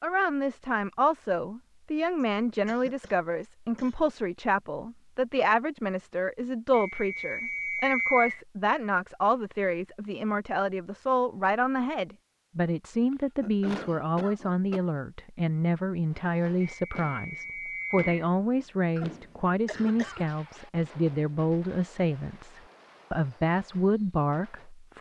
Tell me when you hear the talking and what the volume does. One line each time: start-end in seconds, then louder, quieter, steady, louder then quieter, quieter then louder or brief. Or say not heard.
0.0-24.9 steady.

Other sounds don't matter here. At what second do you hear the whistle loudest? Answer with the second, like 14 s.
8 s.